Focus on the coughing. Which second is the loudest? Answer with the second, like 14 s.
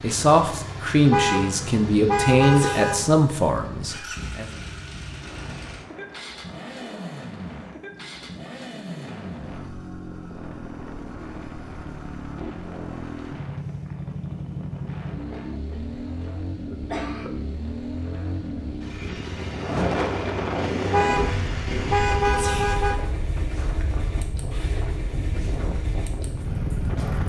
17 s.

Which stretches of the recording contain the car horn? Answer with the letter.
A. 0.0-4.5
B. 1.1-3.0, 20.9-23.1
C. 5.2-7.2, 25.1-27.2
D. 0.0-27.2
B.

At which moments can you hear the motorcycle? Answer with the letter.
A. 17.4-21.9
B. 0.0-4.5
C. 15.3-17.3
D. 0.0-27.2
D.